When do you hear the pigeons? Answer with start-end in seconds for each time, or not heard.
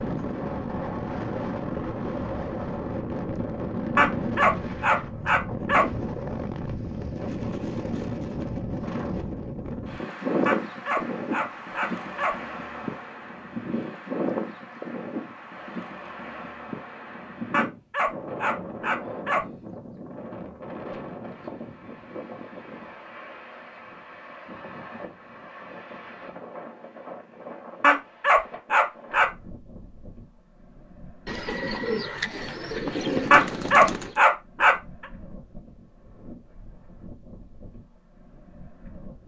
31.2-34.1.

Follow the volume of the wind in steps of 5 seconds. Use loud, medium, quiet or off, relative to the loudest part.
loud, loud, loud, medium, medium, quiet, quiet, quiet.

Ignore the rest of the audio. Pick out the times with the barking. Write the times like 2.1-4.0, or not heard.
4.0-5.8, 10.4-12.3, 17.5-19.4, 27.8-29.3, 33.3-34.8.